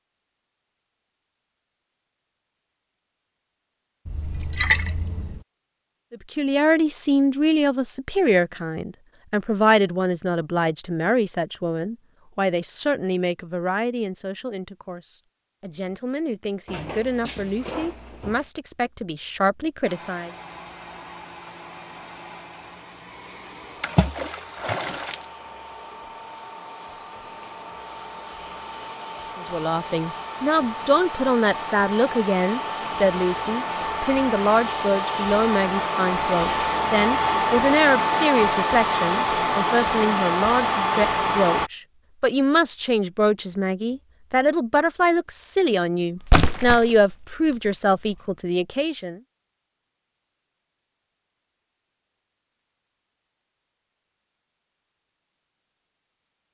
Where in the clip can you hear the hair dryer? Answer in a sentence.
The hair dryer can be heard from 19.8 to 41.7 s.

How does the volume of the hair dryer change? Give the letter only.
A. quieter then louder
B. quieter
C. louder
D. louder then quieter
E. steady
C.